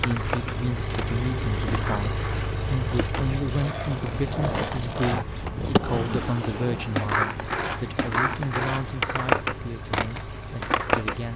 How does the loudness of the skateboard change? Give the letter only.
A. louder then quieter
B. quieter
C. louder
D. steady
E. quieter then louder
C.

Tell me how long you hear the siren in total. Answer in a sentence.
You can't hear the siren here.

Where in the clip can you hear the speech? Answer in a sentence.
You can hear the speech from 0.0 to 11.3 s.